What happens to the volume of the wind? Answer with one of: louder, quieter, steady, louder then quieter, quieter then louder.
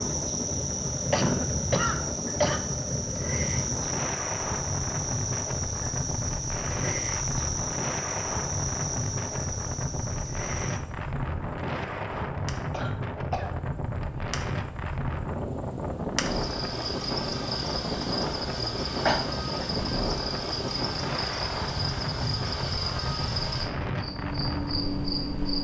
steady.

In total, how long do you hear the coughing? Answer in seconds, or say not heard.
3 s.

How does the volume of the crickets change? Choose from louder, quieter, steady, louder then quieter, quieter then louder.
quieter then louder.